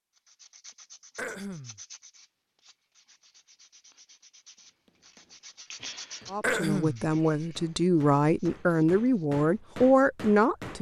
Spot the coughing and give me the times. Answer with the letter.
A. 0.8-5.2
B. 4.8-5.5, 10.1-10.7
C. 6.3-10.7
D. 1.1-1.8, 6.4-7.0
D.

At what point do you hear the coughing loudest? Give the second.
7 s.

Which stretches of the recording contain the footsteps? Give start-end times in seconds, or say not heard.
not heard.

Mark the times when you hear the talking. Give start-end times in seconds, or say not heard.
6.3-10.7.